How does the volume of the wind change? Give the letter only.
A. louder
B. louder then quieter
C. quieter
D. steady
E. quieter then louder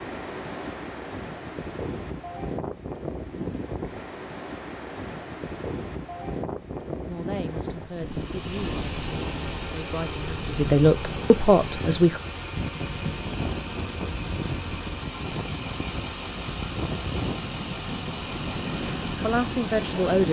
D.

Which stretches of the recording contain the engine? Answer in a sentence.
You can hear the engine from 8.1 to 20.2 s.